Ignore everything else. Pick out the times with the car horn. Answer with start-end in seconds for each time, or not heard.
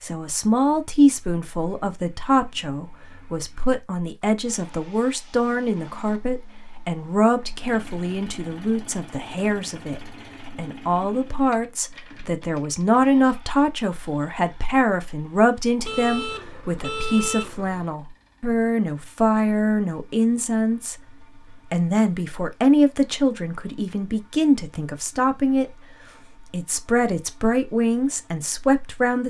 15.8-17.9.